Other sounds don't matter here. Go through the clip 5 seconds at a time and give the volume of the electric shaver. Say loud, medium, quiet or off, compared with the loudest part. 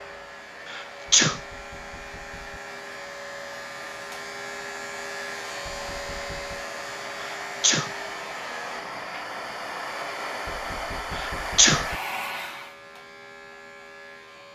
loud, loud, medium.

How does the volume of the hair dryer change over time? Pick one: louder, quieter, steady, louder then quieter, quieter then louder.
louder.